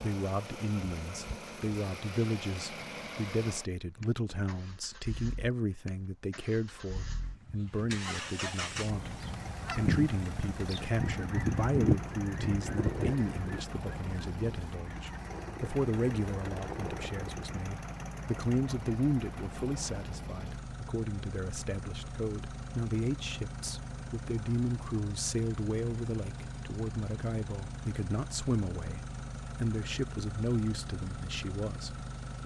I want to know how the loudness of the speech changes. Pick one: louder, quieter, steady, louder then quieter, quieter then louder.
steady.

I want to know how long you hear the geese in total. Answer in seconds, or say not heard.
10 s.